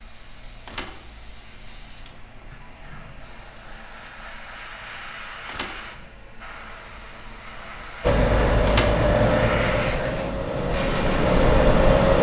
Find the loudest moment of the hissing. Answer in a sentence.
The volume of the hissing peaks at 10 seconds.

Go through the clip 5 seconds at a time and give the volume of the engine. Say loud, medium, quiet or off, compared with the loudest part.
off, loud, loud.